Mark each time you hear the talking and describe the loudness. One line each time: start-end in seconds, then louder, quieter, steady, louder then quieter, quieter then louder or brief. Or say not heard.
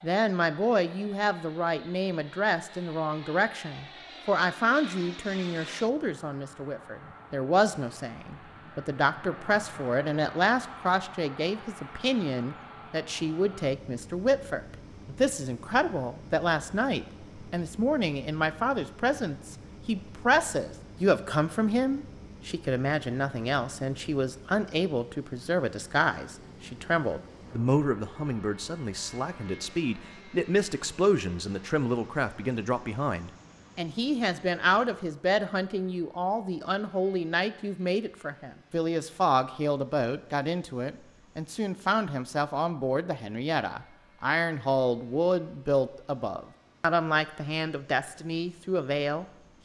0.0-49.6 steady.